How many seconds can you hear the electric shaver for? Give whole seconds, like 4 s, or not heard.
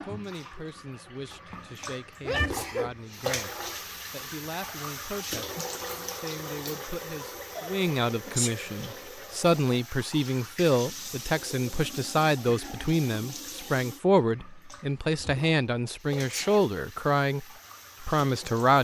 not heard.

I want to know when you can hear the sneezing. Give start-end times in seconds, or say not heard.
2.2-3.0, 7.5-8.6, 16.1-16.6.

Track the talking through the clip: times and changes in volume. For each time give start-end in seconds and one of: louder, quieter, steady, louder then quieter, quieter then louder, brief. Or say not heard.
0.0-18.7 louder.